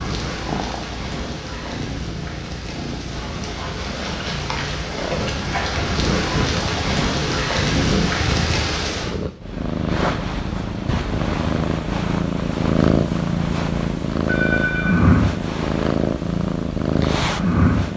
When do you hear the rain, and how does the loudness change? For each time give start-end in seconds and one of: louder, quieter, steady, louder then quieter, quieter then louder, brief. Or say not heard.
0.0-9.2 louder.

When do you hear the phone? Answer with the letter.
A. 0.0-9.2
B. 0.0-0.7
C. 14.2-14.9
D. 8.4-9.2
C.